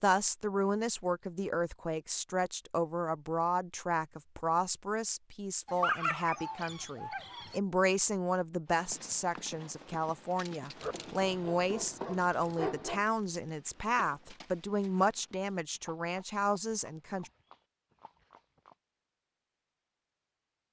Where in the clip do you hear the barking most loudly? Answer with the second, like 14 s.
6 s.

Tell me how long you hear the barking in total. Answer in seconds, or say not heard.
4 s.